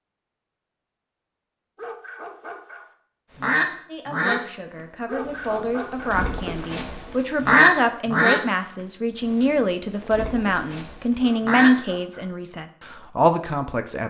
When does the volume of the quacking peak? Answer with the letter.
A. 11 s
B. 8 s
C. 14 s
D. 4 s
B.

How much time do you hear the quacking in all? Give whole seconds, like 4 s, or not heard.
7 s.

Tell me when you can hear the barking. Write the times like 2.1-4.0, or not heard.
1.8-2.9, 5.0-6.2, 11.2-12.3.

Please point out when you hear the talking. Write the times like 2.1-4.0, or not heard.
3.9-14.0.